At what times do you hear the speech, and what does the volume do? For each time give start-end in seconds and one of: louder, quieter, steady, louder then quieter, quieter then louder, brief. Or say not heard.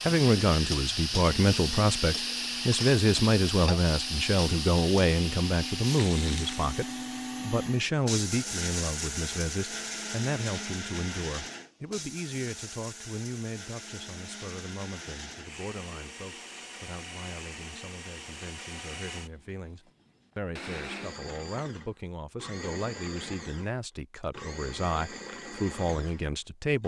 0.0-26.8 quieter then louder.